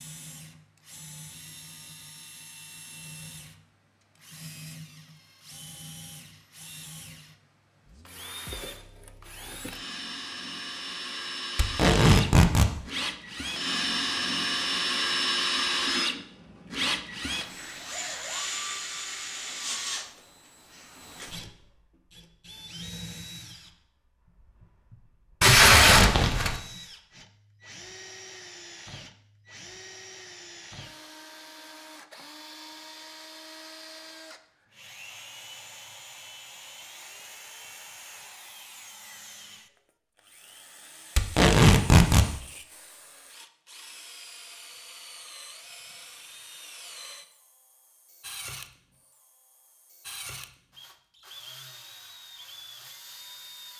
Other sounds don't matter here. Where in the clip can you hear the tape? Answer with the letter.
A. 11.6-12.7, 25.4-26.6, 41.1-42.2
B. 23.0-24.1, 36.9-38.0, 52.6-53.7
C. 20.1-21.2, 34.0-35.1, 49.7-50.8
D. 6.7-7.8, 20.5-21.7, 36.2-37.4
A.